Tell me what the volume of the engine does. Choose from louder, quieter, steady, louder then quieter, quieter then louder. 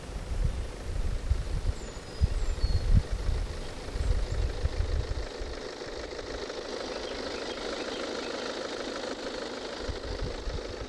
louder.